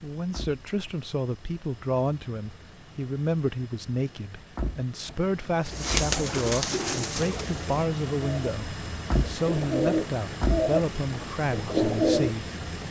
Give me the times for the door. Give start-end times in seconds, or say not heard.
0.1-0.9, 4.4-6.2, 8.9-10.7.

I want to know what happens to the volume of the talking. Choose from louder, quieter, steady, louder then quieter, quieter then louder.
steady.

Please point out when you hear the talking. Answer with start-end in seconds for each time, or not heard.
0.0-12.5.